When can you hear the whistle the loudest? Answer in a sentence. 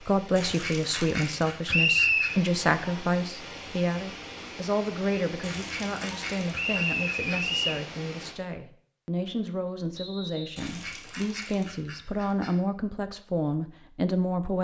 The loudest moment of the whistle is at 2 seconds.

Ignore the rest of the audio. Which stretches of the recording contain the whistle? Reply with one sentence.
You can hear the whistle from 1.7 to 2.4 s, from 6.5 to 7.8 s and from 9.9 to 10.6 s.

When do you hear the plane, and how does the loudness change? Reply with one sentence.
The plane can't be heard in this clip.